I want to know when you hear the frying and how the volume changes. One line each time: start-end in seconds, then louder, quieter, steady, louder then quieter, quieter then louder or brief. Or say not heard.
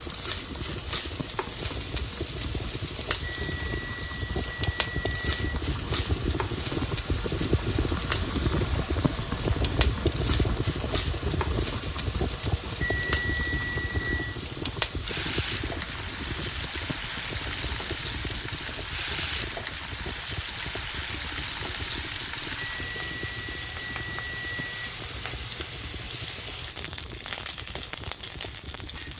0.0-29.1 steady.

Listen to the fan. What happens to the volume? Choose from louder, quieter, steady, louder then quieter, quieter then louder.
louder then quieter.